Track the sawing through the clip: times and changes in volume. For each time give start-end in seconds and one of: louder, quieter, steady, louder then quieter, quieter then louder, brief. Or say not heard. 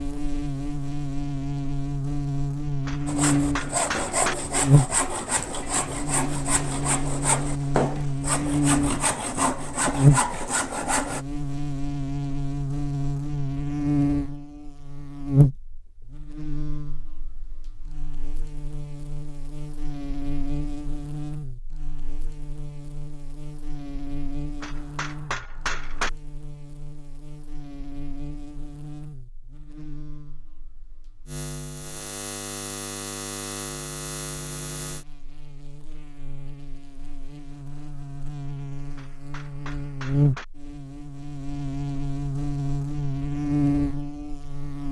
3.0-11.2 steady.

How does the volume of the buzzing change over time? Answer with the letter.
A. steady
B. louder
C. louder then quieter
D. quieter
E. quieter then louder
E.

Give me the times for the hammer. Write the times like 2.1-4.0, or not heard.
2.9-4.3, 24.6-26.1, 39.0-40.5.